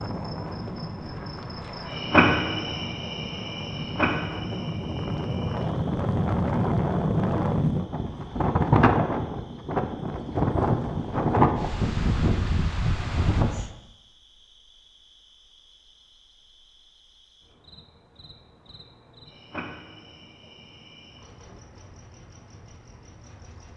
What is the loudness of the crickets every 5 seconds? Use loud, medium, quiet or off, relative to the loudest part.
loud, quiet, quiet, quiet, quiet.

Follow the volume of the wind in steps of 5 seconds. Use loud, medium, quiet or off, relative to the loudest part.
medium, loud, loud, off, off.